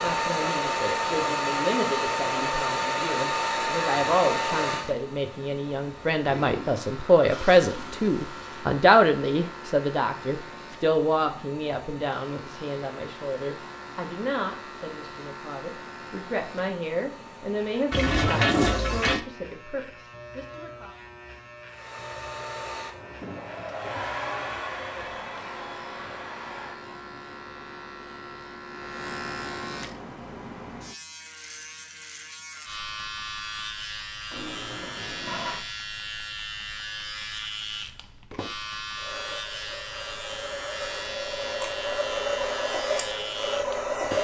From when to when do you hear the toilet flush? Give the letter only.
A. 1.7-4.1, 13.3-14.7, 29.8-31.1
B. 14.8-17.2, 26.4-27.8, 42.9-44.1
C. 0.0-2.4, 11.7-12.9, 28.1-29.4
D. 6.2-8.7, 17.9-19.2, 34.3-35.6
D.